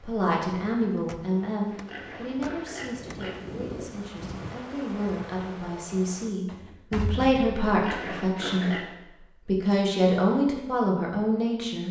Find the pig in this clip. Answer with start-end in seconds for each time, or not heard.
1.5-3.4, 7.7-8.9.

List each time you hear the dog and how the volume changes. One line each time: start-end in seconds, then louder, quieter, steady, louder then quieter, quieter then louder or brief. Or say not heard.
not heard.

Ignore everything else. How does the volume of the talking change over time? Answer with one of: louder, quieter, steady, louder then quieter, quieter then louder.
quieter then louder.